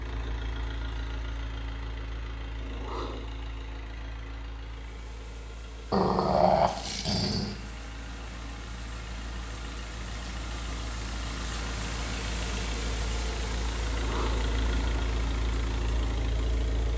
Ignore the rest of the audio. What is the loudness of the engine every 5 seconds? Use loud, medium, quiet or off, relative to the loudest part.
medium, medium, loud, loud.